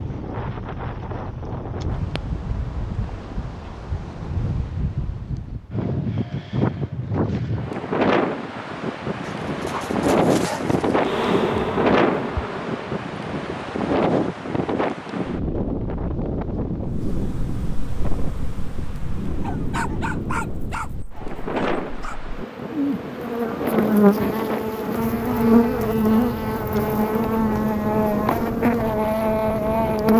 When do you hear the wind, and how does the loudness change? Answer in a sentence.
You can hear the wind from 0.0 to 30.1 s, getting louder then quieter.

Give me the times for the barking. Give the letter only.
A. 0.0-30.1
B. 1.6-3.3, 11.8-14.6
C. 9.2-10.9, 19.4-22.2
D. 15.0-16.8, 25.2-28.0
C.